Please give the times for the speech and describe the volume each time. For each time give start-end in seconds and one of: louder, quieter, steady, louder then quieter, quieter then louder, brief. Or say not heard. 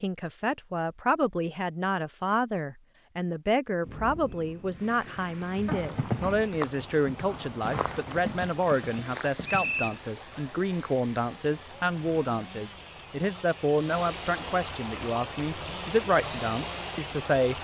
0.0-17.6 steady.